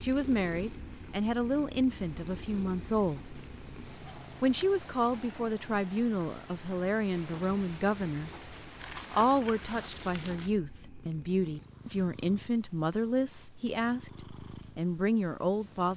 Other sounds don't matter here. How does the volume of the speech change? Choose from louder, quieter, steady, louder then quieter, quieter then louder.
steady.